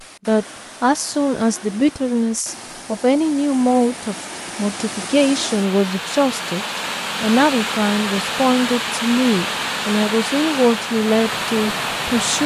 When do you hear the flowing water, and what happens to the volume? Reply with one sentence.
You can hear the flowing water from 0.0 to 12.4 s, getting louder.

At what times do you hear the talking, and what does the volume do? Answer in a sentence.
The talking can be heard from 0.2 to 12.4 s, at a steady volume.